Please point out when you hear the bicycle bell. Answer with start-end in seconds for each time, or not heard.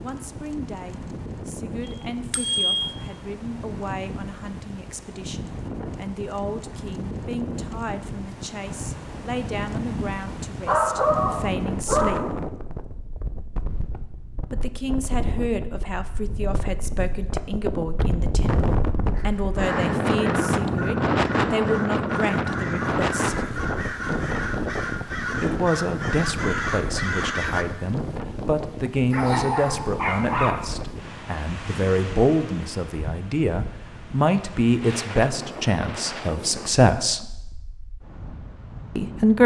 1.9-3.0.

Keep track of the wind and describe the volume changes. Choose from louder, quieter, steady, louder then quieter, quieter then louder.
louder then quieter.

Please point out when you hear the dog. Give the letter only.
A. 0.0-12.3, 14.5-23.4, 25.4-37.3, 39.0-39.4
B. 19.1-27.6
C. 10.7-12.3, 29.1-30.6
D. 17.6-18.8
C.